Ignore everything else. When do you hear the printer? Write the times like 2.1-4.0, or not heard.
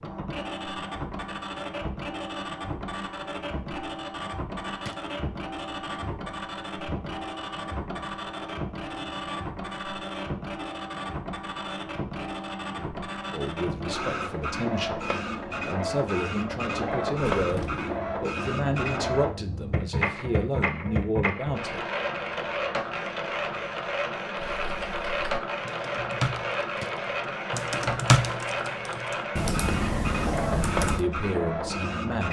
0.0-32.2.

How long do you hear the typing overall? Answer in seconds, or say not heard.
7 s.